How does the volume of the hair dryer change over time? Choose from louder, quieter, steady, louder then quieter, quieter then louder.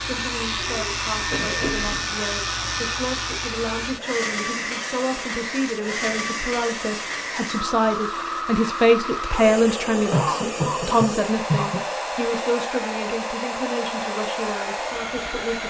steady.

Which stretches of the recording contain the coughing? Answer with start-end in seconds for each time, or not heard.
0.8-2.0, 10.1-11.8.